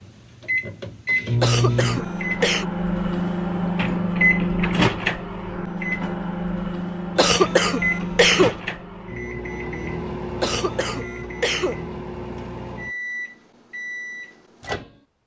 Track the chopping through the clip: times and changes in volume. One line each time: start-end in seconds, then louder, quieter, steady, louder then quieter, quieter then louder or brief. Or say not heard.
not heard.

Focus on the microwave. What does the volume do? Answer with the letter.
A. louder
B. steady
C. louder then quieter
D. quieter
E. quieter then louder
D.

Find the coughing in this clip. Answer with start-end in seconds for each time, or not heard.
1.4-2.6, 7.2-8.6, 10.4-11.8.